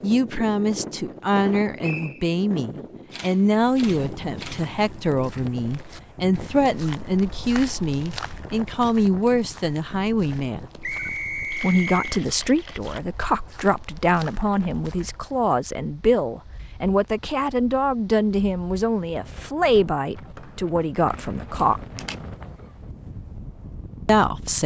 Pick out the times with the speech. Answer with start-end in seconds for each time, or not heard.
0.0-10.7, 11.6-21.8, 24.1-24.6.